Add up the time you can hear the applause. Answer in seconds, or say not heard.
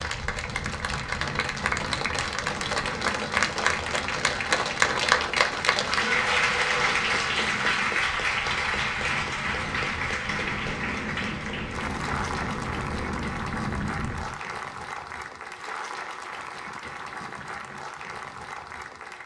19 s.